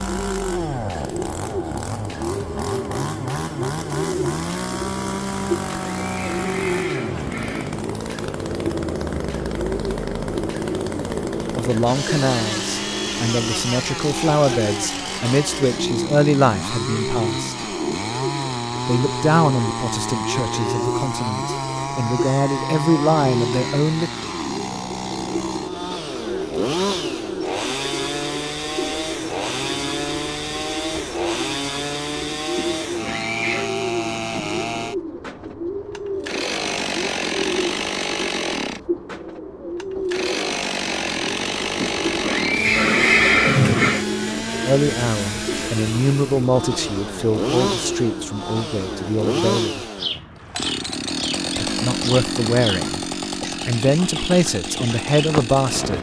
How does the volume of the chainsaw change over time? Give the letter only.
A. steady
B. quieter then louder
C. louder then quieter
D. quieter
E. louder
A.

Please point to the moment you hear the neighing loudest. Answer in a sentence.
The loudest moment of the neighing is at 43 seconds.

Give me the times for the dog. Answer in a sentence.
The dog can't be heard in this clip.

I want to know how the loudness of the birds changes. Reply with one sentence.
The volume of the birds stays about the same.